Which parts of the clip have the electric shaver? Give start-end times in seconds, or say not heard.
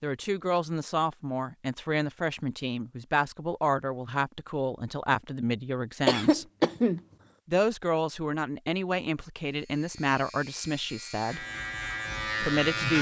9.4-12.9.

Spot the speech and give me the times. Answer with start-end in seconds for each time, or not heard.
0.0-6.5, 7.5-11.4, 12.4-12.9.